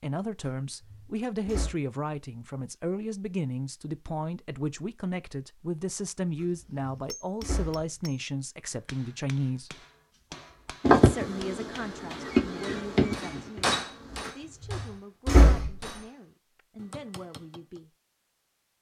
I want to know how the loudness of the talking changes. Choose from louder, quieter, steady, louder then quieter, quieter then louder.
quieter.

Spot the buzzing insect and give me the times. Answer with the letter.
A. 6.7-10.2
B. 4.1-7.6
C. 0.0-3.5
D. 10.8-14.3
D.